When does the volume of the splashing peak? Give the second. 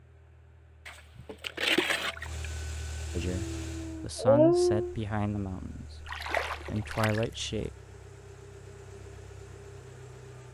2 s.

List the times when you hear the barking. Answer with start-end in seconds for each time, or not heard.
3.2-5.0.